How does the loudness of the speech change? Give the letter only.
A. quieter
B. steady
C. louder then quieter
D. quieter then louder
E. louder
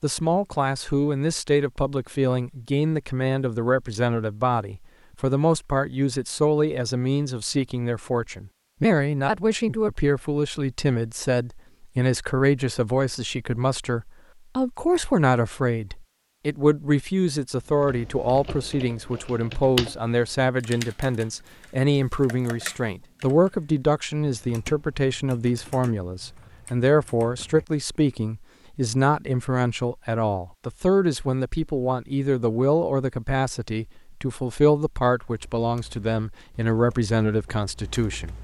B.